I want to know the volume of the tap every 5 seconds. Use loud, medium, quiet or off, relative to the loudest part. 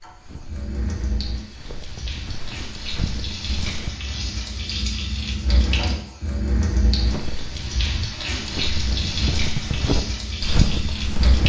medium, loud, loud.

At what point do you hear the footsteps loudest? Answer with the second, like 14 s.
11 s.